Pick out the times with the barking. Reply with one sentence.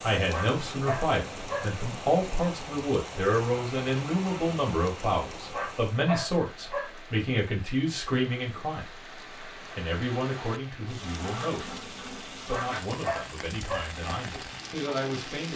You can hear the barking from 0.3 to 1.8 s, from 5.5 to 7.0 s and from 12.5 to 13.9 s.